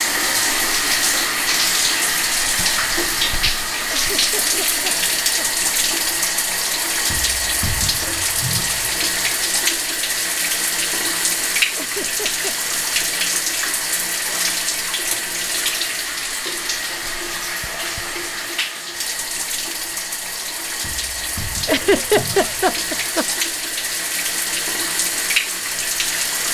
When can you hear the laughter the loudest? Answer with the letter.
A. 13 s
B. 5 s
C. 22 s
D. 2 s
C.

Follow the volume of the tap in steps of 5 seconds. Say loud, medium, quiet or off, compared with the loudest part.
loud, loud, loud, medium, medium, loud.